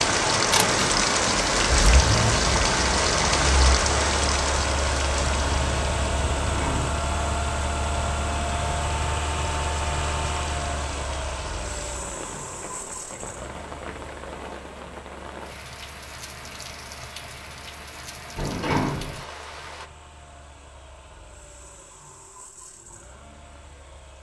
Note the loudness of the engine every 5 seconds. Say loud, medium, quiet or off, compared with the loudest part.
loud, loud, medium, quiet, quiet.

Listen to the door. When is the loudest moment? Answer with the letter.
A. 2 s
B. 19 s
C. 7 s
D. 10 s
B.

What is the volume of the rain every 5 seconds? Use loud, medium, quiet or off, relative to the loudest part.
loud, medium, quiet, quiet, off.